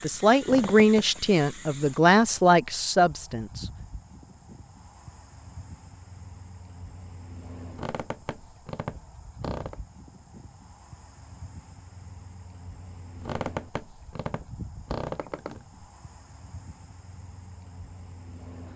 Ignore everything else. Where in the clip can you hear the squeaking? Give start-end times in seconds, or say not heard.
0.4-1.1, 7.7-9.8, 13.2-15.7.